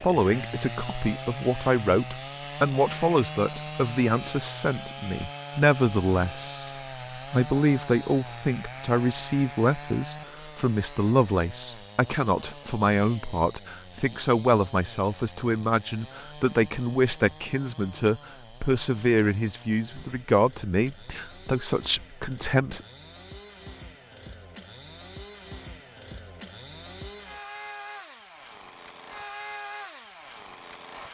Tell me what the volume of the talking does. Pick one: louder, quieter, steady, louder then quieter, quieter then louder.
steady.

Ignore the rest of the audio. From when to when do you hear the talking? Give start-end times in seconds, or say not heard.
0.0-22.9.